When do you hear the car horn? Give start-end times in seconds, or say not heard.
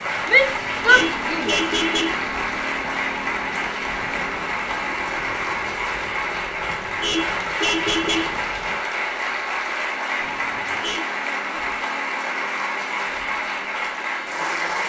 0.5-2.2, 6.8-8.4, 10.4-11.1.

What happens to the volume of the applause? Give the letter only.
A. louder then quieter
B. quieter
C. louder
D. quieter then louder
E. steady
E.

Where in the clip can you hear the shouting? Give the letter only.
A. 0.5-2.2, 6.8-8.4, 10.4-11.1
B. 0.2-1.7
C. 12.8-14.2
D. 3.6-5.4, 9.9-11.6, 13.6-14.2
B.